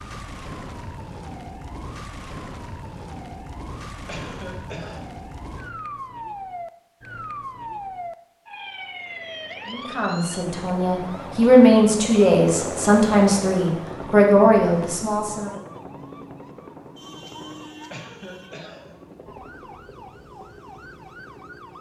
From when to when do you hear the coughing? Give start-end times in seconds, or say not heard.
4.0-5.0, 17.9-18.9.